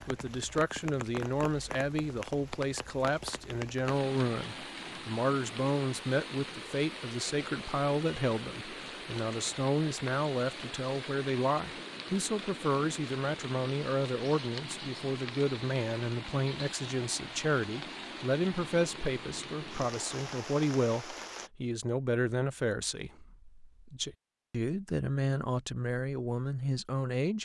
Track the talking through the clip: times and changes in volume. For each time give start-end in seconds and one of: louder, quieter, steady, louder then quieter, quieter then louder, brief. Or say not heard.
0.1-27.3 steady.